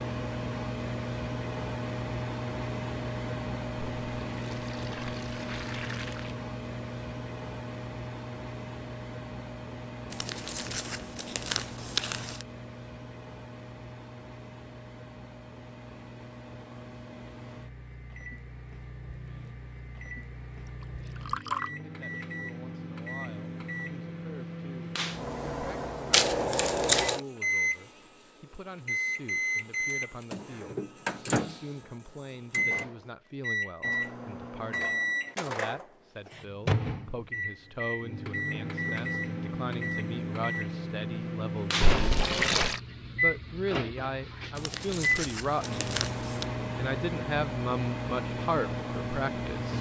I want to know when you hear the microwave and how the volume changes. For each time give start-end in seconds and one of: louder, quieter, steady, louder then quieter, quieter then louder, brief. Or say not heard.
0.0-49.7 quieter then louder.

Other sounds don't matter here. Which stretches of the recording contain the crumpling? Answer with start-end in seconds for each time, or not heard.
10.1-12.4, 26.1-27.2, 44.5-46.5.